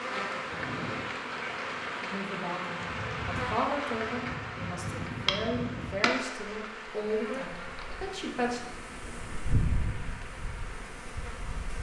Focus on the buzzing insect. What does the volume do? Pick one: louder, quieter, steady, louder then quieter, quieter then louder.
quieter.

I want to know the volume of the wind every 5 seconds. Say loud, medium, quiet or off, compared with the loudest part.
loud, loud, medium.